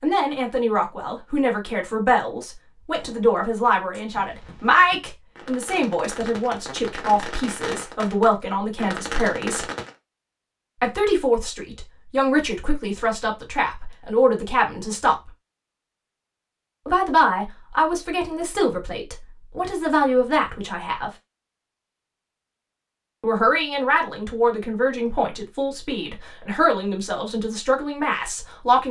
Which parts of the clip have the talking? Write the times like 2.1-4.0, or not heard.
0.0-9.7, 10.8-15.3, 16.9-21.1, 23.2-28.8.